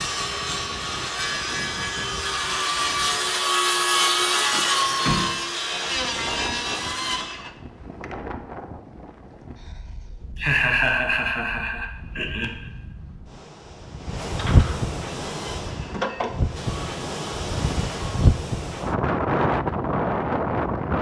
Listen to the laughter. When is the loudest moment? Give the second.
11 s.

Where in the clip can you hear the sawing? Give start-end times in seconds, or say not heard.
0.0-7.5, 15.2-18.3.